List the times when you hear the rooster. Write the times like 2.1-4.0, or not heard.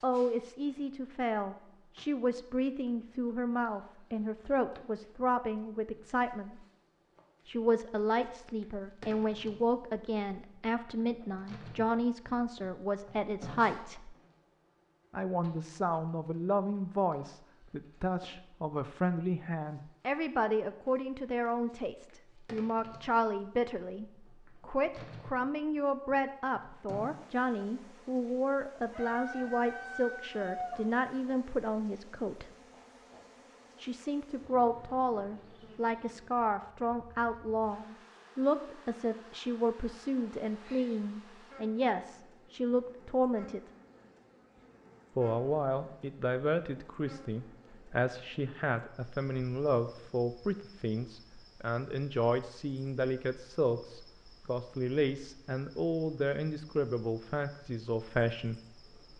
28.9-30.8.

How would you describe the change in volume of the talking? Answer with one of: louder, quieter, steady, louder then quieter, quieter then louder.
steady.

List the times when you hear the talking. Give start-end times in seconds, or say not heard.
0.0-6.6, 7.5-14.2, 15.1-32.5, 33.8-43.6, 45.1-58.6.